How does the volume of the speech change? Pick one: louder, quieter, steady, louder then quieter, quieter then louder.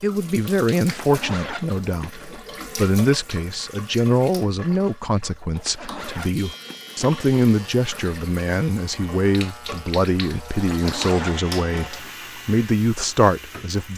steady.